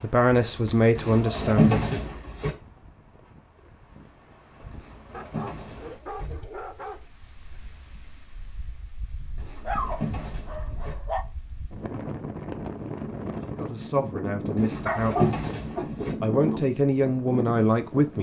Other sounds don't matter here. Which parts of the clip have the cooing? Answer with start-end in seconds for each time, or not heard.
0.9-2.5, 4.7-6.3, 9.3-10.9, 14.6-16.1.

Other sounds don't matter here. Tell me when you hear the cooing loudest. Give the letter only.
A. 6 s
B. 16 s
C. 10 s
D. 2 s
D.